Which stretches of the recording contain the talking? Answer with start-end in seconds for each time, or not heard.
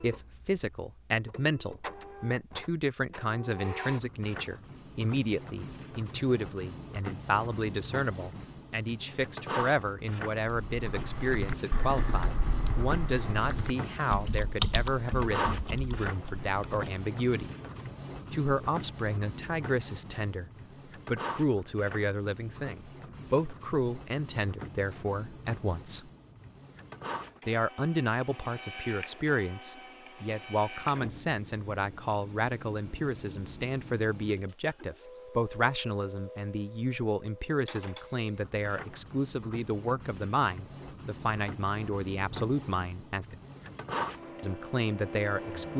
0.0-17.6, 18.3-26.1, 27.4-43.4, 44.4-45.7.